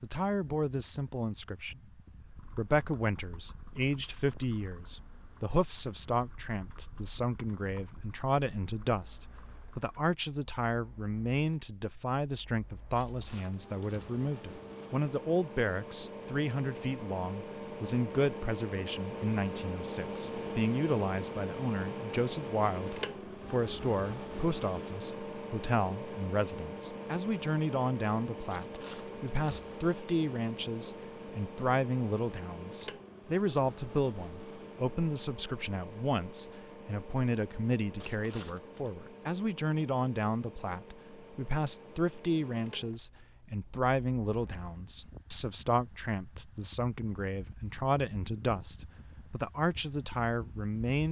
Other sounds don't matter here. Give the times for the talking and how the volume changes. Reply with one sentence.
You can hear the talking from 0.0 to 51.0 s, at a steady volume.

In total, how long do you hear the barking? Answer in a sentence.
You can't hear the barking here.